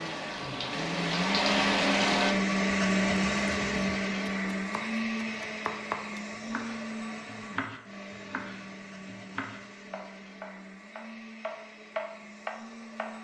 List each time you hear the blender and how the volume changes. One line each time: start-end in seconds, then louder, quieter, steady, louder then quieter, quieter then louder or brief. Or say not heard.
0.0-13.1 quieter.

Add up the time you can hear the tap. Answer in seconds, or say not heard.
2 s.